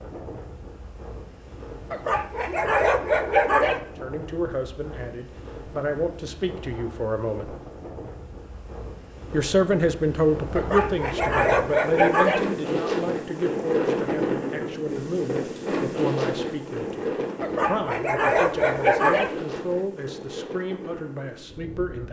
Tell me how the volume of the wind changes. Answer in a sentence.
The volume of the wind goes up, then down.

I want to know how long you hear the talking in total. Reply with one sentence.
You can hear the talking for 16 seconds altogether.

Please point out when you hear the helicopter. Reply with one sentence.
You can't hear the helicopter here.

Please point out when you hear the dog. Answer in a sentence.
You can hear the dog from 1.9 to 3.8 s, from 10.6 to 12.4 s and from 17.4 to 19.3 s.